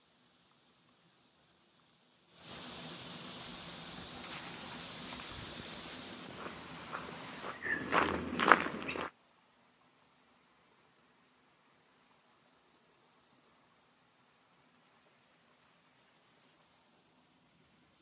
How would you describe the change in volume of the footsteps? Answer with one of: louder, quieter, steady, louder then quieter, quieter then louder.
louder.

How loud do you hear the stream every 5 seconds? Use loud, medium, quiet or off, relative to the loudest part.
loud, loud, quiet, quiet.